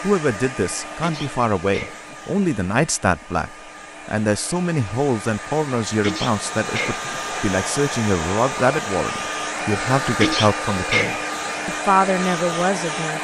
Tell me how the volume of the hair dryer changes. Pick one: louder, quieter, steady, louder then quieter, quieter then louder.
louder.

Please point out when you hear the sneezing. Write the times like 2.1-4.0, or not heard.
0.8-2.1, 5.8-7.2, 10.0-11.2.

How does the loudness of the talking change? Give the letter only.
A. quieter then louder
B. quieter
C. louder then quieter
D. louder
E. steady
E.